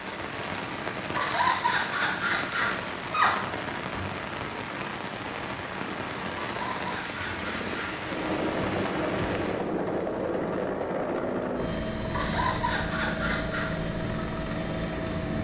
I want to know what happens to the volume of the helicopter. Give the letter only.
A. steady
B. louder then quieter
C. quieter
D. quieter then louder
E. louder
A.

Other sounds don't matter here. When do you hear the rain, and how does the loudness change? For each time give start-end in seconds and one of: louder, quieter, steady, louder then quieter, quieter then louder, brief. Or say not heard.
0.0-9.7 steady.